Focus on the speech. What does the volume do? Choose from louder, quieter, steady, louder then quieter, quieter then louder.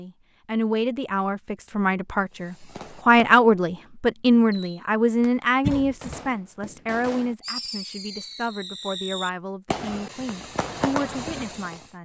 louder then quieter.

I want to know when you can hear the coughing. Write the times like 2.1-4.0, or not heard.
5.6-6.2.